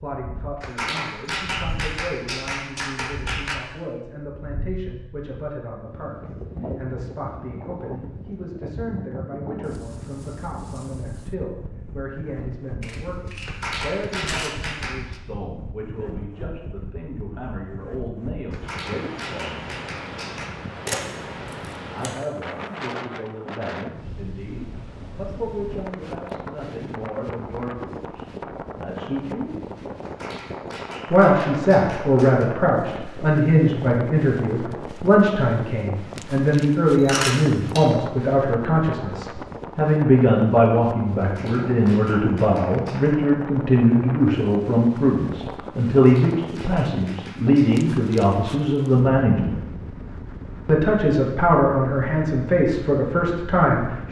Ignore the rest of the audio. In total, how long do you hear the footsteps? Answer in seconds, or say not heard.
not heard.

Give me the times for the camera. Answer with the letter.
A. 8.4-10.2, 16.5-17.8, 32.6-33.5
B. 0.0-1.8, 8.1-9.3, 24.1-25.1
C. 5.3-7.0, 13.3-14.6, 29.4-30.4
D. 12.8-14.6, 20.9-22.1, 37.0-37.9
D.